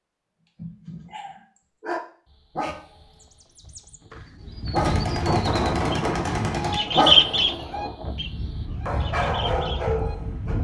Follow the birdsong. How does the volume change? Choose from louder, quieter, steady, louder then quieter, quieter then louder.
louder then quieter.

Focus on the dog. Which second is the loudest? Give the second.
7 s.